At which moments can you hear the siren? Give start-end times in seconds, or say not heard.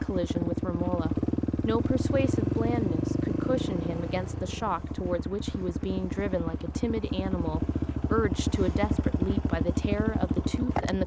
not heard.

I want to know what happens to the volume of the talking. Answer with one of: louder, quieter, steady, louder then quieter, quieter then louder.
steady.